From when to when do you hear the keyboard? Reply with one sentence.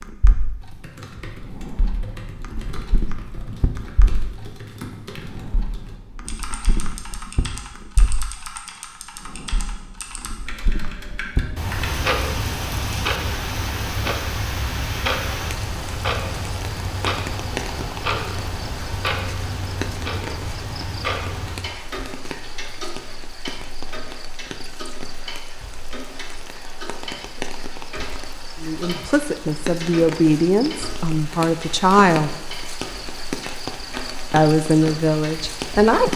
The keyboard can be heard from 0.6 to 12.1 s.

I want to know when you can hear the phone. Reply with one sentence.
You can't hear the phone here.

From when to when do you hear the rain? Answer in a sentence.
The rain can be heard from 11.7 to 36.1 s.